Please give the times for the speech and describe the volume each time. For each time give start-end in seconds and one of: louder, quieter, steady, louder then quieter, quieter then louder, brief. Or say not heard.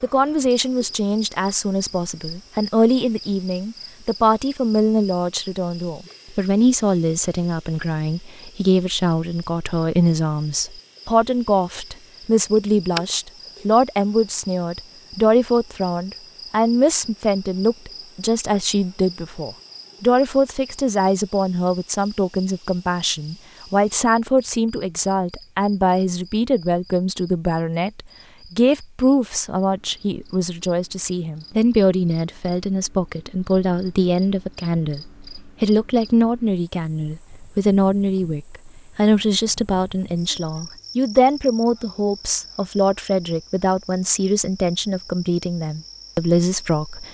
0.0-47.0 steady.